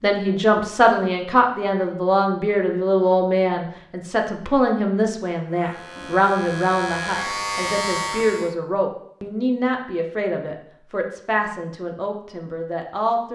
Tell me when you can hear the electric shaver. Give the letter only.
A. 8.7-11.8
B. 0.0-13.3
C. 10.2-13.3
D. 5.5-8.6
D.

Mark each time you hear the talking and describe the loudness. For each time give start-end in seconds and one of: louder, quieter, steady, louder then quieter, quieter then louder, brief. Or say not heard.
0.0-13.3 quieter.